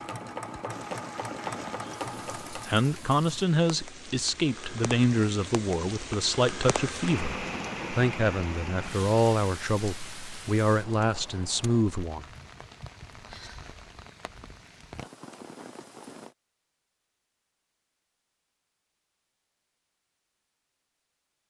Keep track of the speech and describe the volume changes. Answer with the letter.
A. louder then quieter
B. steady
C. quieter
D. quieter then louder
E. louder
B.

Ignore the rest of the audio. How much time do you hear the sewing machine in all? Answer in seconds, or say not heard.
3 s.